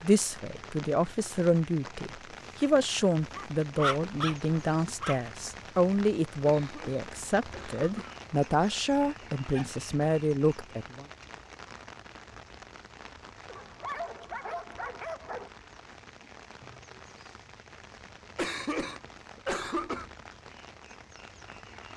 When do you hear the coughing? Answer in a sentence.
You can hear the coughing from 6.5 to 8.2 s and from 18.4 to 20.1 s.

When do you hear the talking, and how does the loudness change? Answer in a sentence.
You can hear the talking from 0.0 to 11.1 s, at a steady volume.